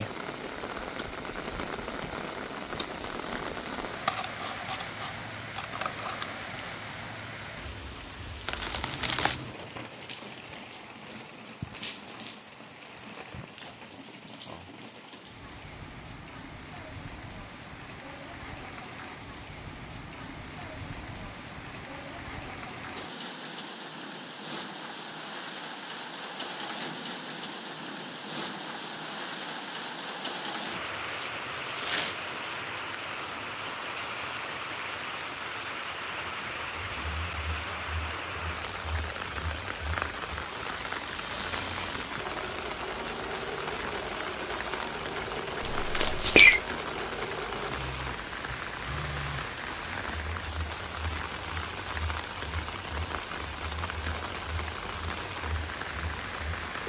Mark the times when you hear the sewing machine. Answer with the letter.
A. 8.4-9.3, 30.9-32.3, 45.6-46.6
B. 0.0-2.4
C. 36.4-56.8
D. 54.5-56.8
C.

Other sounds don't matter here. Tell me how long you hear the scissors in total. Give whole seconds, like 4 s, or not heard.
2 s.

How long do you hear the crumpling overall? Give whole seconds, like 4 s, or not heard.
3 s.